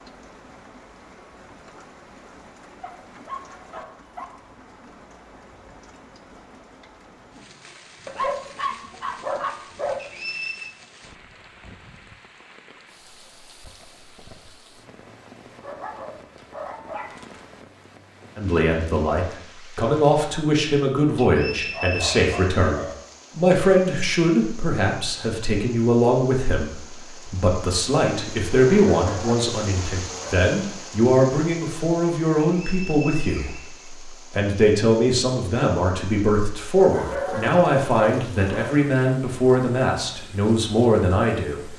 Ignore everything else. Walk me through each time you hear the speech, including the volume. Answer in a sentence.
You can hear the speech from 18.4 to 41.7 s, at a steady volume.